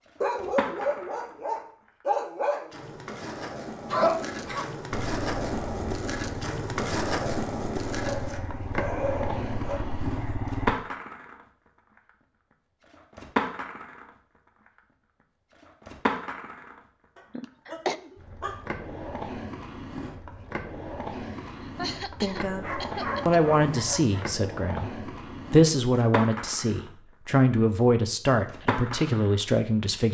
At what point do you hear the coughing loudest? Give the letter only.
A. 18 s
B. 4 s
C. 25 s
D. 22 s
B.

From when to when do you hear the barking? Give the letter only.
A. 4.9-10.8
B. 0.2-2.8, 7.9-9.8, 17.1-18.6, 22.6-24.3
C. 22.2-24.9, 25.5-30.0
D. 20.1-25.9
B.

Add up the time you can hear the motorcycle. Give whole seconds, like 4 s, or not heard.
6 s.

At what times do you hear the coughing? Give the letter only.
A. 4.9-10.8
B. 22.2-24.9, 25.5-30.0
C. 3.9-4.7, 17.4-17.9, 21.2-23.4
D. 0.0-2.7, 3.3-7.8
C.